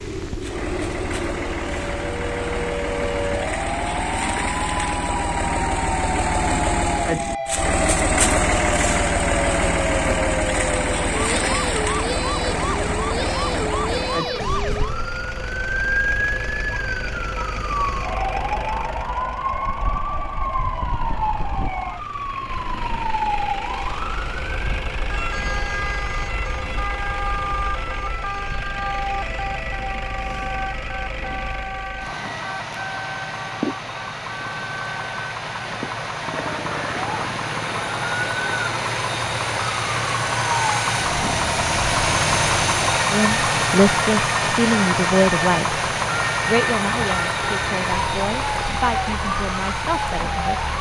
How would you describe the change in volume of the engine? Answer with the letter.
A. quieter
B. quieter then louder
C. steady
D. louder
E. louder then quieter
B.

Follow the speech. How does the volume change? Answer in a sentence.
The volume of the speech goes down.